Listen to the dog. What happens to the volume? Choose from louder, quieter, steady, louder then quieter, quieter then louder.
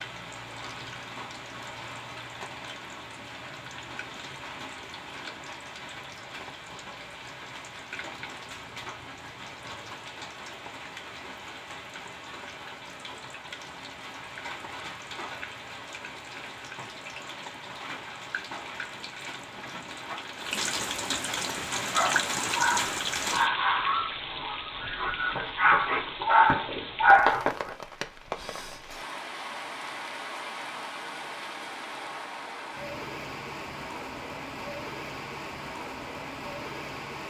quieter then louder.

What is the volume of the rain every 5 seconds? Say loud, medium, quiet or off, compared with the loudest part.
medium, medium, medium, medium, loud, medium, medium, medium.